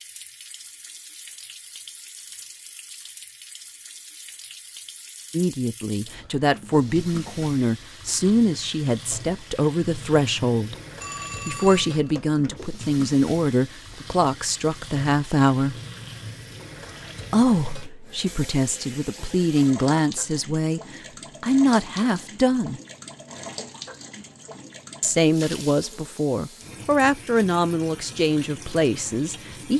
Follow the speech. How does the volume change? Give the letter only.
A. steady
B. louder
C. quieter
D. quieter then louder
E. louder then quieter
A.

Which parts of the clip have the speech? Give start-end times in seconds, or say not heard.
5.3-10.8, 11.4-15.8, 17.3-22.8, 25.0-29.7.